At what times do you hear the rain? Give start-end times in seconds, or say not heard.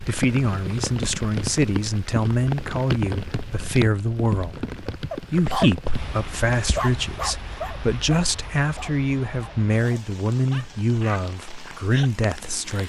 0.0-12.8.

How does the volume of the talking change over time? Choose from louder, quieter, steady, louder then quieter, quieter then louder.
steady.